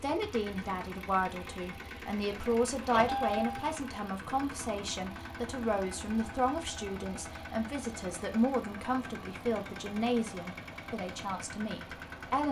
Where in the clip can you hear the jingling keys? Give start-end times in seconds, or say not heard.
2.3-3.8.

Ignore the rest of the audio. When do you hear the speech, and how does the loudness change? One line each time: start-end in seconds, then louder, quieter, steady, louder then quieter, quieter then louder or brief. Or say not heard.
0.0-12.4 steady.